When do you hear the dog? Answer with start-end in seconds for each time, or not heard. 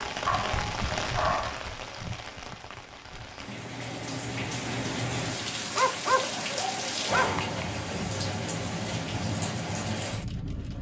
0.2-1.7, 5.8-7.3.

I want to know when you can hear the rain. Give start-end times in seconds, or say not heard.
0.0-10.7.